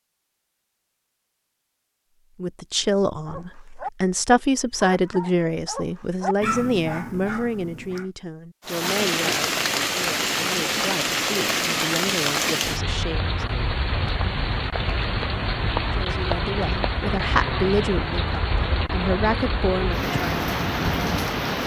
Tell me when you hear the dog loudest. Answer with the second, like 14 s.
6 s.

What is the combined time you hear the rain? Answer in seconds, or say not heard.
13 s.